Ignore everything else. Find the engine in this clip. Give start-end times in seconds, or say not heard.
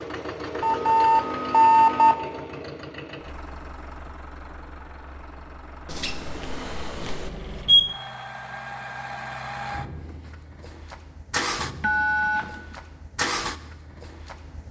0.0-14.6.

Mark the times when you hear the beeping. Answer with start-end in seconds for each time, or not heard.
0.6-2.1, 5.8-8.0, 11.8-12.8.